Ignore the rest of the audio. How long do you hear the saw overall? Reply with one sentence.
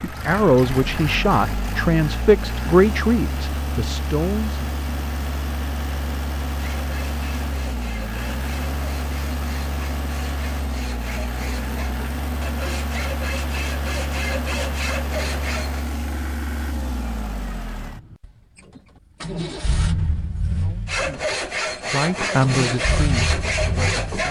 The saw can be heard for 13 seconds in total.